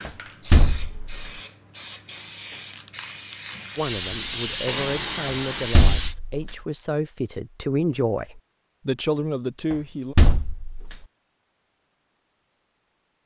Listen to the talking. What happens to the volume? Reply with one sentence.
The loudness of the talking goes up.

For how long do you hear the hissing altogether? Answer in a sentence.
You can hear the hissing for 6 seconds altogether.